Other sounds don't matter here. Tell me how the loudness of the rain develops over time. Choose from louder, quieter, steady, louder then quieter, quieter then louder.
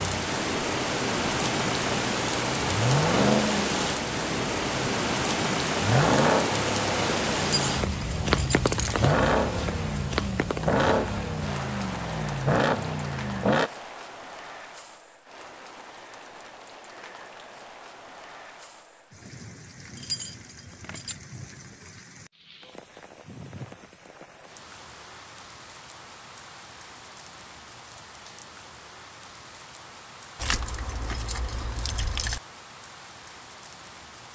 quieter.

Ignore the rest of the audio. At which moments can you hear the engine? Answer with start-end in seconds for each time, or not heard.
0.0-13.7.